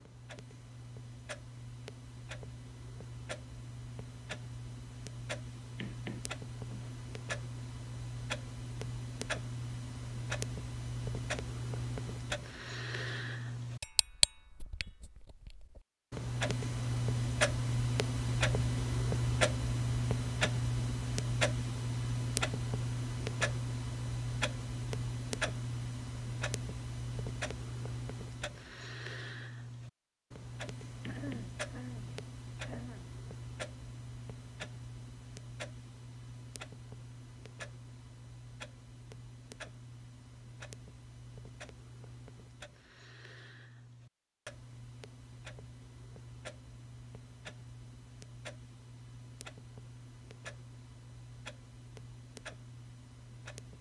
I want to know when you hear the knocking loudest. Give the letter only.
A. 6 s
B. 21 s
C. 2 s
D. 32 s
A.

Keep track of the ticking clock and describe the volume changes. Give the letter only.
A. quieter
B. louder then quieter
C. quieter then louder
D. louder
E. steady
B.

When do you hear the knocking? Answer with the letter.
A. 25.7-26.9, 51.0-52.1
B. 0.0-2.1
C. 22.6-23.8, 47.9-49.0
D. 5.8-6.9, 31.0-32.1
D.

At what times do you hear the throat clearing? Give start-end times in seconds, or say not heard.
31.1-33.1.